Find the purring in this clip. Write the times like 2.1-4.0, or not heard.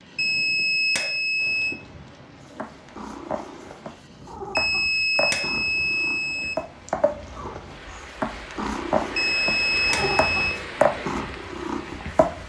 2.4-12.4.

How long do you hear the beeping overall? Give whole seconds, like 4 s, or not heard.
5 s.